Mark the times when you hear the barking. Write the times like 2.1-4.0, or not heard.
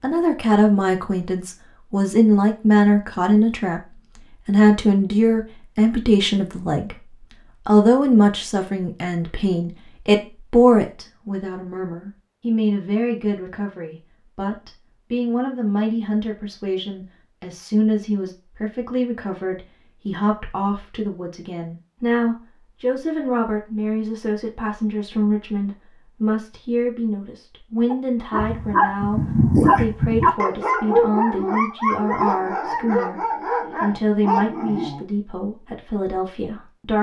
27.9-35.0.